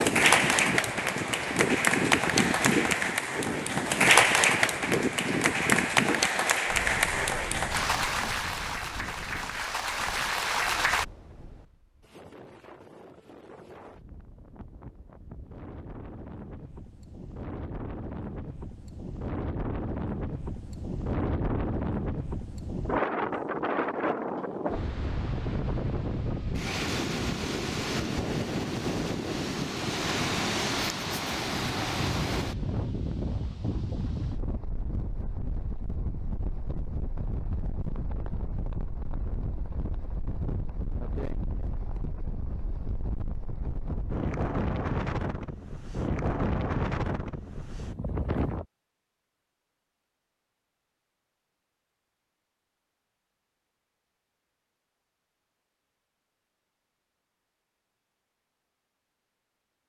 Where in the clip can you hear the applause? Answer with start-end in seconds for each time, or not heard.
0.0-11.1.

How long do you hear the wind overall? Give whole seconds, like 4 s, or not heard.
49 s.